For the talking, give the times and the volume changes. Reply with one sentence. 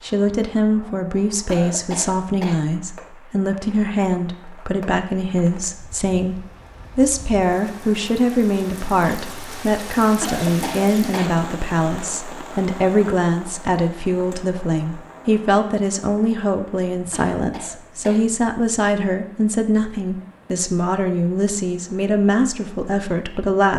The talking can be heard from 0.0 to 23.7 s, at a steady volume.